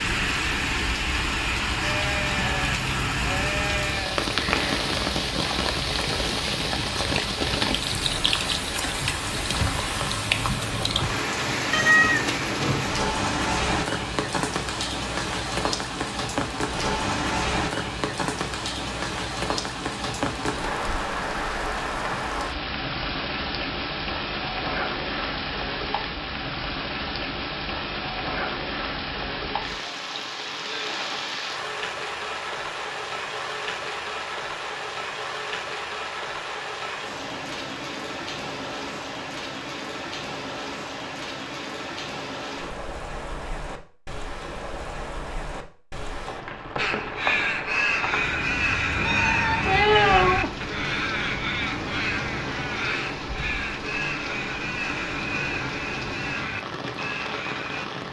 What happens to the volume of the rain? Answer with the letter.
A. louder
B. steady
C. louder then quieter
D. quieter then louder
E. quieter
E.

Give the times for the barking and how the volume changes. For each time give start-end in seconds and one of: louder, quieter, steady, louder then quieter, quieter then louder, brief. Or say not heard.
not heard.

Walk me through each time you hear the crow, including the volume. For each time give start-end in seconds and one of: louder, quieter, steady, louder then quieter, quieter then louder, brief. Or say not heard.
46.8-57.9 quieter.